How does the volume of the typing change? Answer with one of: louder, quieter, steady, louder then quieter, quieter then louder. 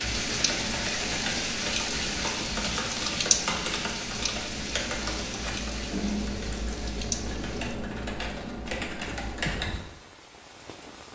steady.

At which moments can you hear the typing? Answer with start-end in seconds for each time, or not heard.
0.0-9.8.